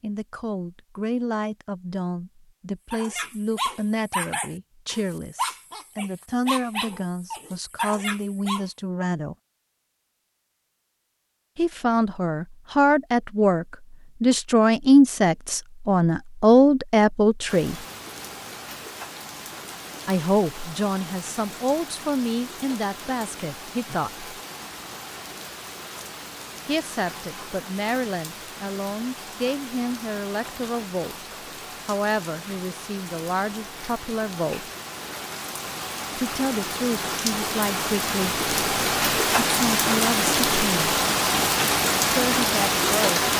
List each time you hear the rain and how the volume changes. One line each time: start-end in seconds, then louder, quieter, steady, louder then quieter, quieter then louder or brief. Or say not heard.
17.4-43.3 louder.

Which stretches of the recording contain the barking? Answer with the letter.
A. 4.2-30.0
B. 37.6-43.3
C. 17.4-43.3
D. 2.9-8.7
D.